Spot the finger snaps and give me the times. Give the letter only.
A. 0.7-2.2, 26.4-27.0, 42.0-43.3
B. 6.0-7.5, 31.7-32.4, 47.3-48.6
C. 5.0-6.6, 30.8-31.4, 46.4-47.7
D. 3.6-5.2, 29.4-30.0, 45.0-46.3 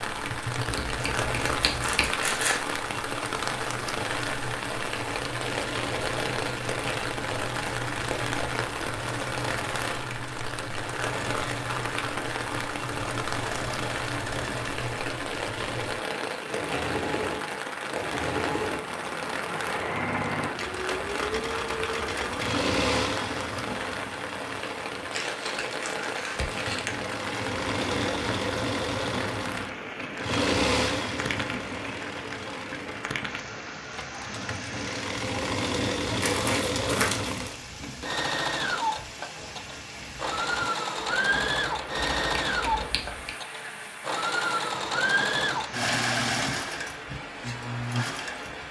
A.